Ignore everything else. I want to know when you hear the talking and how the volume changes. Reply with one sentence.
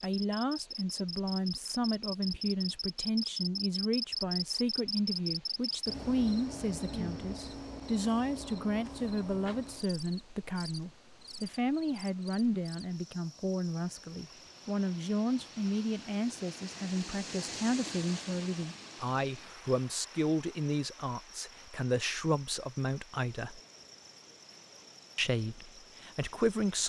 The talking can be heard from 0.0 to 23.6 s, at a steady volume; and briefly from 25.1 to 26.8 s.